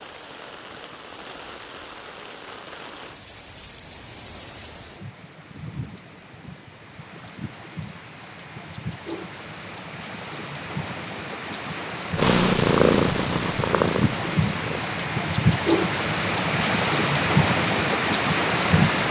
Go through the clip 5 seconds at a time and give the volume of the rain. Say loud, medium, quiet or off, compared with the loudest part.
quiet, quiet, medium, loud.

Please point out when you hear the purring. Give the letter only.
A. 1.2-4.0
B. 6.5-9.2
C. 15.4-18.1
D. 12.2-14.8
D.